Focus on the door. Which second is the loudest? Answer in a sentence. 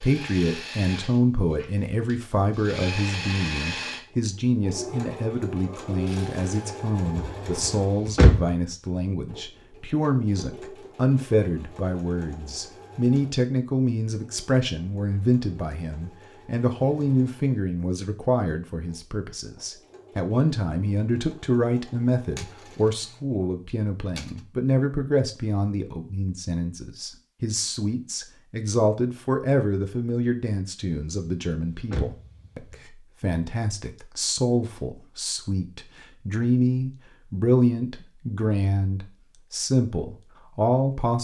The volume of the door peaks at 8 seconds.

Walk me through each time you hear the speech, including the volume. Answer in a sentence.
The speech can be heard from 0.0 to 41.1 s, at a steady volume.